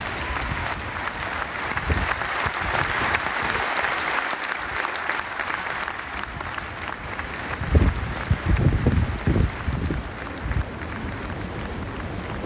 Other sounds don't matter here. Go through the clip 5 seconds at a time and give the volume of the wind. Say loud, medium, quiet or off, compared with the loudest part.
medium, loud, medium.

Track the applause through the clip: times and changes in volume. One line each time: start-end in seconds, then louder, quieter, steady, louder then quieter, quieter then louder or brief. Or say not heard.
0.0-12.4 quieter.